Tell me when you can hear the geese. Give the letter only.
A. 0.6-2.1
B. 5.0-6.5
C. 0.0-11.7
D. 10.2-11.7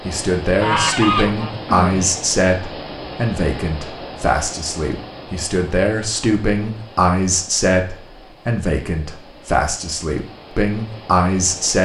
A.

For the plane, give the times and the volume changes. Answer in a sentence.
You can't hear the plane here.